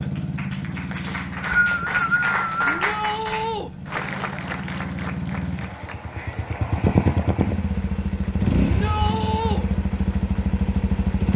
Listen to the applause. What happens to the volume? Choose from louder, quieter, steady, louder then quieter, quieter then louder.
quieter.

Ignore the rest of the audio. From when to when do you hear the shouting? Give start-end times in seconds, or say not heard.
2.6-3.7, 8.6-9.7.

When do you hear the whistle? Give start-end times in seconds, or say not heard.
1.0-2.7.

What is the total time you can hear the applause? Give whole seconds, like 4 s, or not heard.
11 s.